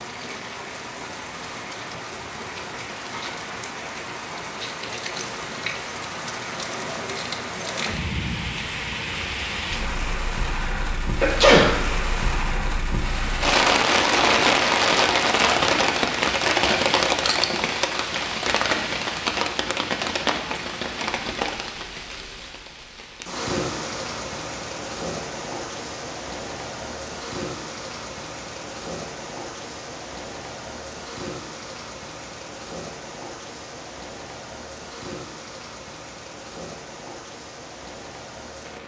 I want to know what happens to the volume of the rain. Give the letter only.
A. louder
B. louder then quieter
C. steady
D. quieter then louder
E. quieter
B.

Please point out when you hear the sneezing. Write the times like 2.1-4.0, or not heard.
10.4-11.8.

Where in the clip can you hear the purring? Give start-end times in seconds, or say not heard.
not heard.